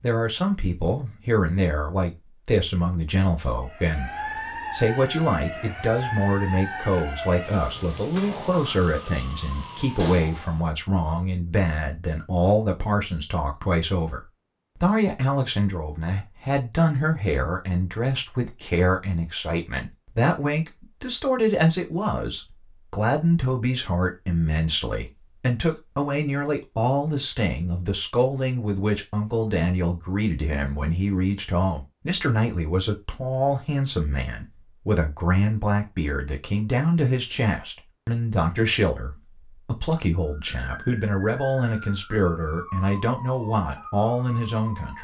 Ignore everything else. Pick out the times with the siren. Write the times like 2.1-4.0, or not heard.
3.6-10.7, 40.1-44.9.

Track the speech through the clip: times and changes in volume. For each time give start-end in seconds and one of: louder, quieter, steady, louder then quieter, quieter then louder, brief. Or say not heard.
0.0-44.9 steady.